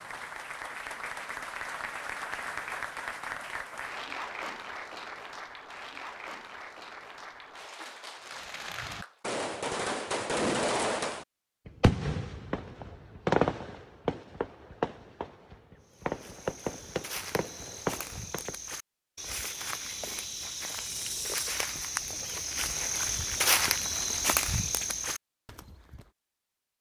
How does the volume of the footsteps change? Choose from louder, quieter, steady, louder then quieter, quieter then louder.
louder.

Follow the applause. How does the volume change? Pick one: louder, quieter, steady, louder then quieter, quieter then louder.
quieter.